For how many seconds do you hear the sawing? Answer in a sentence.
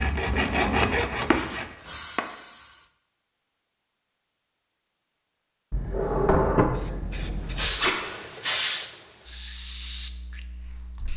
The sawing can be heard for 2 seconds in total.